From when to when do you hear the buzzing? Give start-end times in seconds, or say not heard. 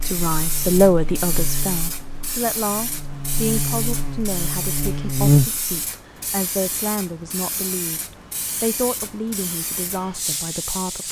0.0-5.7.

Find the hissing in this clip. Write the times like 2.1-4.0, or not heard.
0.0-11.0.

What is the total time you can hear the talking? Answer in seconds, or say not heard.
10 s.